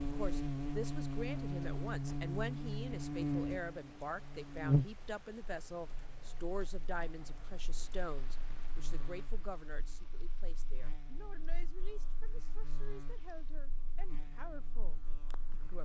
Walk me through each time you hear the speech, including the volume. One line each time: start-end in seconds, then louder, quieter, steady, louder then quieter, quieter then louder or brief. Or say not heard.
0.0-15.8 quieter.